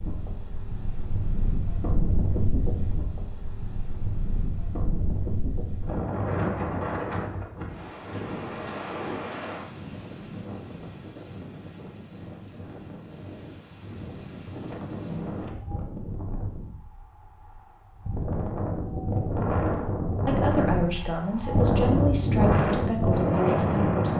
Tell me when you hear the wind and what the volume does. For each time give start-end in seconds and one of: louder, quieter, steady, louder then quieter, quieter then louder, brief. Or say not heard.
0.0-24.1 quieter then louder.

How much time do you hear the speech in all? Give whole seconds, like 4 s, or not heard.
4 s.